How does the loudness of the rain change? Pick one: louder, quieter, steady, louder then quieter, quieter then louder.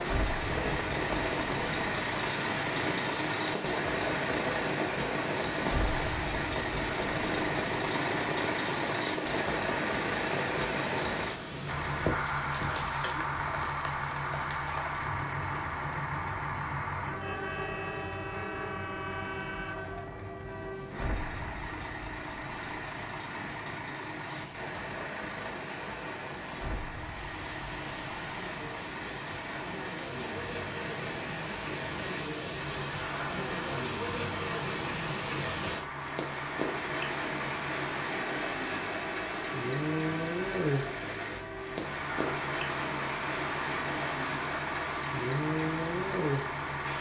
quieter then louder.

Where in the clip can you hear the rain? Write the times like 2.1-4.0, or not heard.
0.0-46.9.